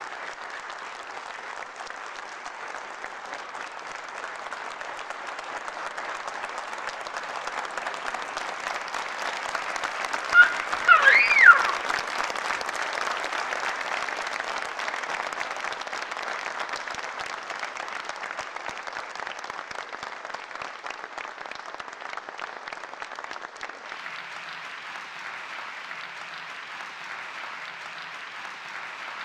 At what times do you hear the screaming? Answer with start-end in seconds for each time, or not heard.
10.3-11.8.